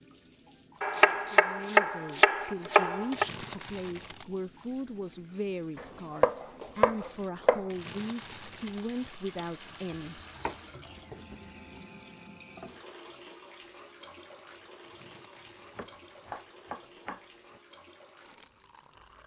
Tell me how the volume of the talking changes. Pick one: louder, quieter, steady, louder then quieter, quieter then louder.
steady.